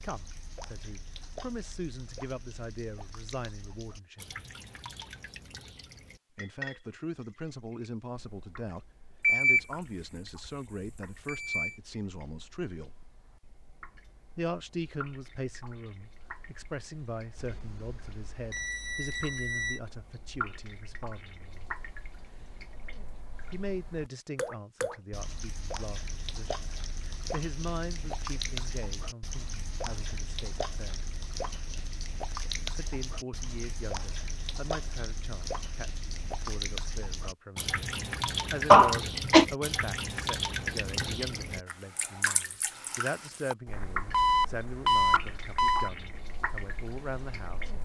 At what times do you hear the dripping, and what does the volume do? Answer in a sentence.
You can hear the dripping from 0.0 to 47.8 s, getting quieter then louder.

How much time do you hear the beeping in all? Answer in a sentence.
You can hear the beeping for 7 seconds altogether.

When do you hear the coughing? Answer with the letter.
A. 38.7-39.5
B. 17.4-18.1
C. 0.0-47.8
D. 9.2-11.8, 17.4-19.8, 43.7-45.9
A.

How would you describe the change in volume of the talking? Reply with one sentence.
The loudness of the talking stays about the same.